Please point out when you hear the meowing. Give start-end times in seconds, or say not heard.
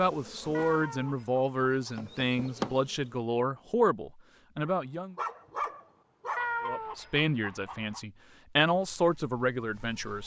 0.5-1.7, 6.3-8.0.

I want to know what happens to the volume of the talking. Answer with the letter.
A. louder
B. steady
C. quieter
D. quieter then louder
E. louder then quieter
B.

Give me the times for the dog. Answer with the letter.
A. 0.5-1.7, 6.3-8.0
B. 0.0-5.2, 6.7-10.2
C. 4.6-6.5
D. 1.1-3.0
C.